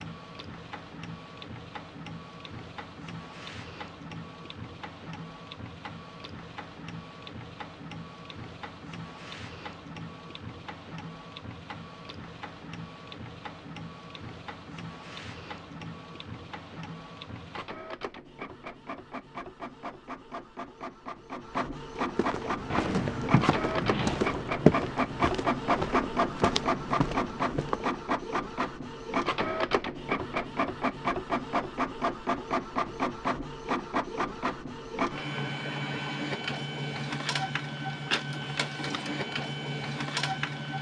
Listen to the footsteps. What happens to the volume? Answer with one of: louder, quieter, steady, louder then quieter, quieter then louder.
louder then quieter.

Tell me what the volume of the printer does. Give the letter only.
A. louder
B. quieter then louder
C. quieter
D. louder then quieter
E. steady
A.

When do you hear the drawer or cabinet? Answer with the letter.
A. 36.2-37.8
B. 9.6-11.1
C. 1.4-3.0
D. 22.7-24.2
D.